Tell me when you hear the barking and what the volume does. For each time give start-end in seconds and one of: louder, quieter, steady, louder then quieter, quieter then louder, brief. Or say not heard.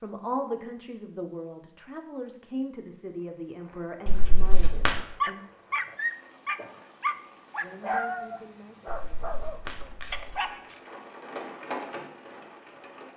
5.2-10.8 quieter.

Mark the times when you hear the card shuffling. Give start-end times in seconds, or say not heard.
4.0-5.0, 8.8-10.4.